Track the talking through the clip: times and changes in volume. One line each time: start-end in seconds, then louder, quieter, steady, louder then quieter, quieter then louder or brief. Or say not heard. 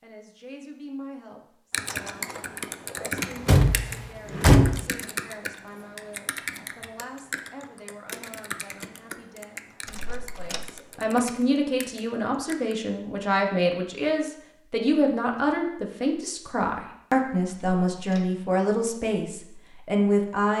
0.0-20.5 louder.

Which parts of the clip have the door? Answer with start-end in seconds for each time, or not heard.
3.1-4.8, 9.8-10.7, 17.4-18.3.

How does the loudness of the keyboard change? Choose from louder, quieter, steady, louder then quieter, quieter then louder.
quieter.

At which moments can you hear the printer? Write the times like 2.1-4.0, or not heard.
not heard.